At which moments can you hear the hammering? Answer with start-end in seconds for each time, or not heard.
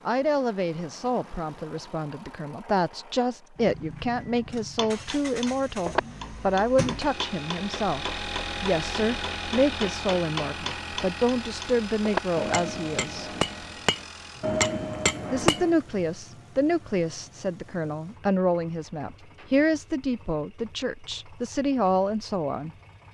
4.8-15.7.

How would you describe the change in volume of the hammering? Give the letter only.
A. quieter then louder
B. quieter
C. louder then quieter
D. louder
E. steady
A.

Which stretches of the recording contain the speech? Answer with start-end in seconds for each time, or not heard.
0.1-13.3, 15.3-22.7.